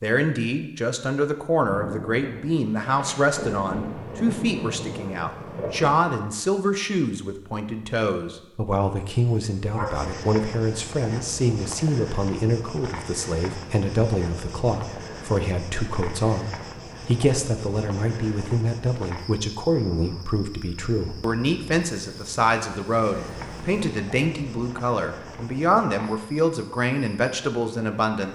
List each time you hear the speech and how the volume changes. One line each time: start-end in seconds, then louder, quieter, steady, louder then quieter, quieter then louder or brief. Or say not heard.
0.0-28.2 steady.